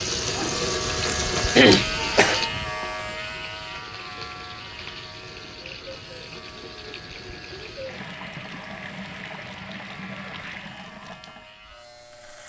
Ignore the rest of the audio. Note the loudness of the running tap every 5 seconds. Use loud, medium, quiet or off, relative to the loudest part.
loud, medium, medium.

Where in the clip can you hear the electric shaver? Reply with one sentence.
The electric shaver can be heard from 0.0 to 12.4 s.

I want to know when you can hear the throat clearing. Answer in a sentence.
You can hear the throat clearing from 1.6 to 2.7 s.